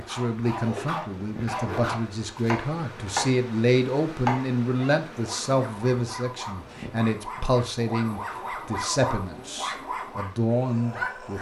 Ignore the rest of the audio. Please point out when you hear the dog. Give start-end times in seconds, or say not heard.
0.0-2.0, 4.7-11.3.